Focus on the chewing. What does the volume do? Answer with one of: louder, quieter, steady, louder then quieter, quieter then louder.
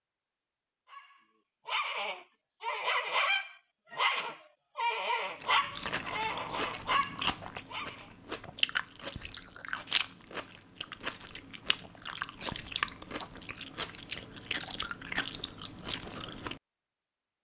steady.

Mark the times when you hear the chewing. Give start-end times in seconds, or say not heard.
5.2-16.6.